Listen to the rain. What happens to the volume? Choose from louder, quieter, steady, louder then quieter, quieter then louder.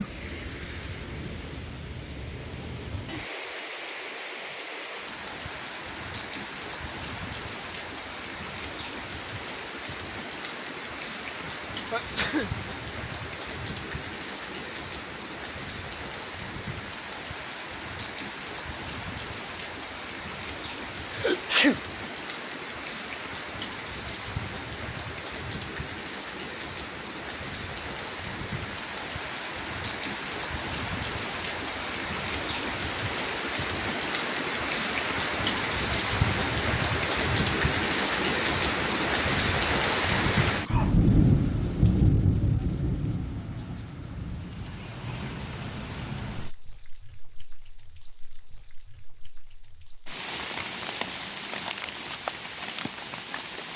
louder then quieter.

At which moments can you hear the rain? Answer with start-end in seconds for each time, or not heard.
0.0-53.7.